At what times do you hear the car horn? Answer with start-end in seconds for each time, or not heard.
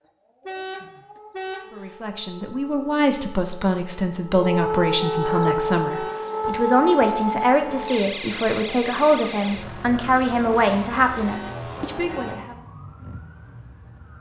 0.5-1.9, 5.0-6.3, 11.2-12.4.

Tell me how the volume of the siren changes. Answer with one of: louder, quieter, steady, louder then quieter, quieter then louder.
louder then quieter.